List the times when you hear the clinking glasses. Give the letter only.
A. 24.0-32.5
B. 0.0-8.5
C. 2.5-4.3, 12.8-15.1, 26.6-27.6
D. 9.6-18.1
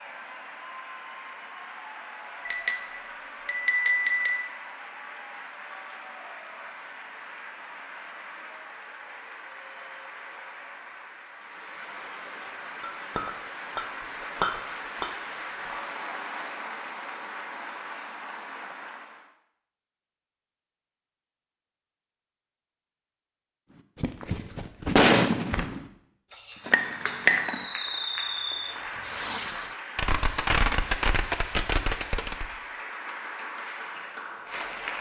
C.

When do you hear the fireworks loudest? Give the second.
25 s.